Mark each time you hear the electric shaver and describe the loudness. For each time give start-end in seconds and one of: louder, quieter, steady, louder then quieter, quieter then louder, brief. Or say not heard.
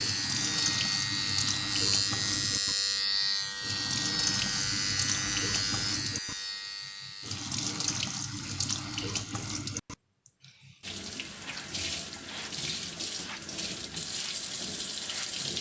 0.0-9.2 quieter.